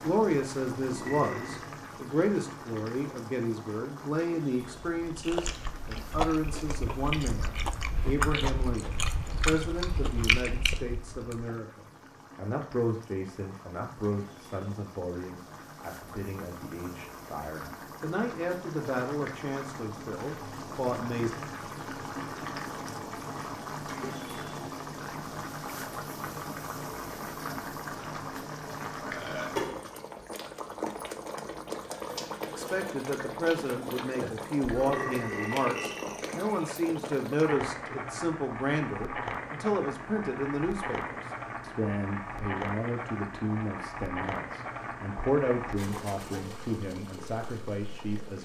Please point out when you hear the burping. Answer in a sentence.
The burping can be heard from 0.8 to 1.6 s, from 29.0 to 29.6 s and from 34.8 to 36.5 s.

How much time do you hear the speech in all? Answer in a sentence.
You can hear the speech for 37 seconds altogether.